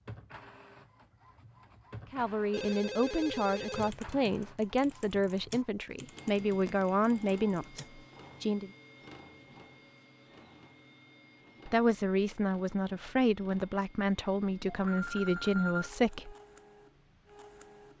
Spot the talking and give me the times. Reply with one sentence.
The talking can be heard from 2.1 to 8.7 s and from 11.7 to 16.4 s.